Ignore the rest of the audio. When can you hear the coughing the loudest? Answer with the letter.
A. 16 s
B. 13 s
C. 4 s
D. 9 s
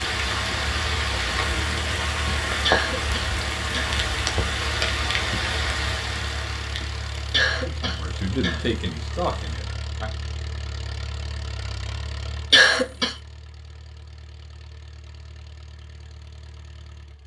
B.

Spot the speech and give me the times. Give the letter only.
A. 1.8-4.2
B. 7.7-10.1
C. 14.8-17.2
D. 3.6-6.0
B.